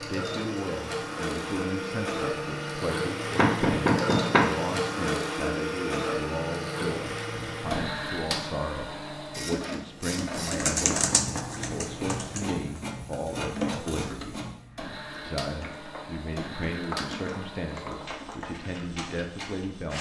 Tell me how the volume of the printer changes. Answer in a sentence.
The loudness of the printer goes down.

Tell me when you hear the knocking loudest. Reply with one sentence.
The loudest moment of the knocking is at 4 seconds.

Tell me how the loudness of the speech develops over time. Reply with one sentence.
The loudness of the speech stays about the same.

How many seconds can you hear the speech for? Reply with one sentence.
You can hear the speech for 19 seconds altogether.